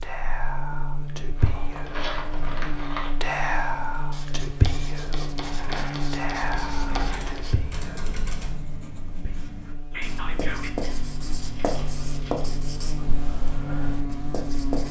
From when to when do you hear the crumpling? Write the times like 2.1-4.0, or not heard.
1.4-3.1, 5.3-7.4, 10.7-12.6.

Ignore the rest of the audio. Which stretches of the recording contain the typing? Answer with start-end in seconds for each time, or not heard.
6.4-8.6.